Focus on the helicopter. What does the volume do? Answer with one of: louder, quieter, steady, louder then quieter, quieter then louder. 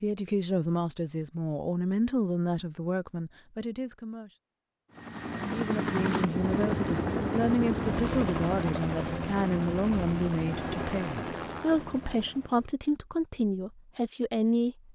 quieter.